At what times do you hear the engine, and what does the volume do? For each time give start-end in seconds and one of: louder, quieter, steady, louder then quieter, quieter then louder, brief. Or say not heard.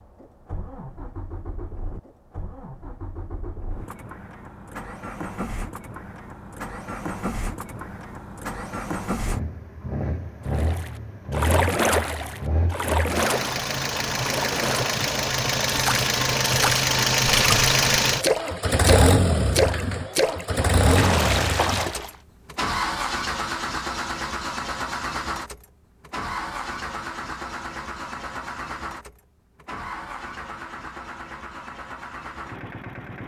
0.0-33.2 louder then quieter.